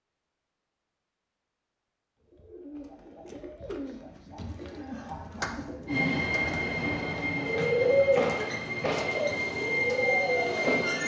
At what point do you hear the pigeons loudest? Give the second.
8 s.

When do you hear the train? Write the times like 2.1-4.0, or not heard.
5.8-11.0.